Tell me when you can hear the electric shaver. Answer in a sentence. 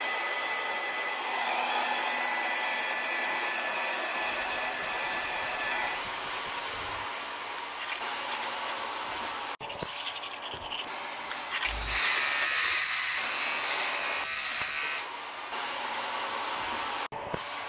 You can hear the electric shaver from 11.7 to 15.1 s.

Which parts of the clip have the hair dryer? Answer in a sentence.
You can hear the hair dryer from 0.0 to 17.6 s.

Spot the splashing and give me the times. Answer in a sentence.
You can't hear the splashing here.